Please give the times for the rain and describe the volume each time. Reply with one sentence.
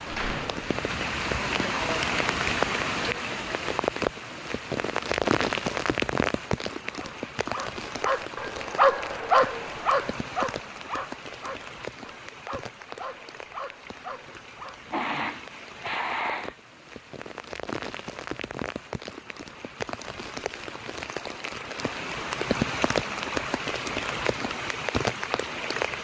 You can hear the rain from 0.0 to 26.0 s, getting quieter then louder.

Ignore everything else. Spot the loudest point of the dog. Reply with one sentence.
The loudest moment of the dog is at 9 seconds.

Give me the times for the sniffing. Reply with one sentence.
You can hear the sniffing from 14.9 to 16.6 s.